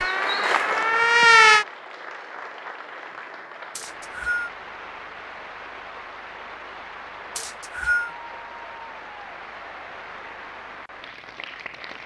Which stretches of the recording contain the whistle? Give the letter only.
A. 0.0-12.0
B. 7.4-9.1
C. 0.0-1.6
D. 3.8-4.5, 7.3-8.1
D.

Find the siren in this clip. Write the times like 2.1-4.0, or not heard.
0.0-1.6.